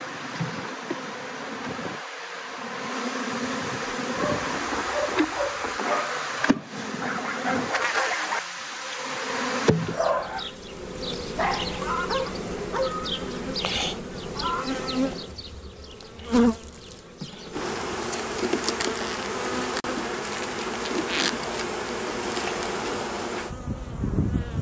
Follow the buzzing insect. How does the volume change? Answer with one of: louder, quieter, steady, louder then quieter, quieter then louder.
steady.